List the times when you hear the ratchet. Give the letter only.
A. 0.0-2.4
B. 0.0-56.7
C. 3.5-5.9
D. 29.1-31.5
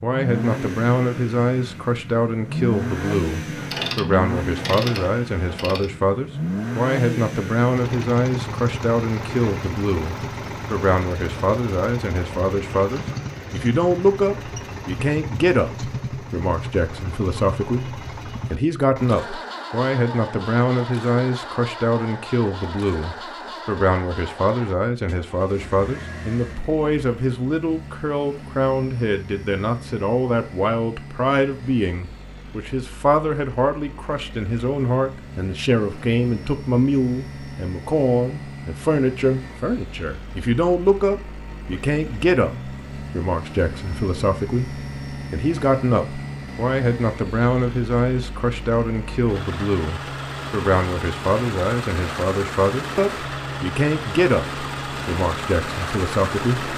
C.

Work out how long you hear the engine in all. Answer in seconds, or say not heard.
57 s.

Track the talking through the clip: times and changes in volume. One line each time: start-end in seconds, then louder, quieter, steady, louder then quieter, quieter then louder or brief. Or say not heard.
0.0-56.7 steady.